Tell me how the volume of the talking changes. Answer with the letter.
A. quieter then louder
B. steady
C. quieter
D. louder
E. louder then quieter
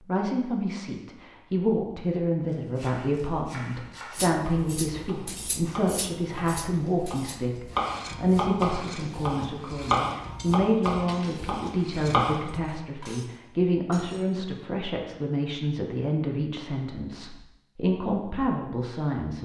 B.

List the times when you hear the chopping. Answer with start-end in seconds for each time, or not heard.
2.5-12.6.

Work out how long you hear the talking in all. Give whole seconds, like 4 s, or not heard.
19 s.